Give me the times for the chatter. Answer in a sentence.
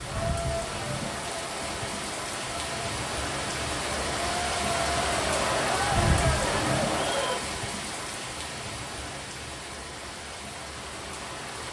You can hear the chatter from 0.0 to 7.5 s.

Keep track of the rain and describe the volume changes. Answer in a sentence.
The volume of the rain goes up, then down.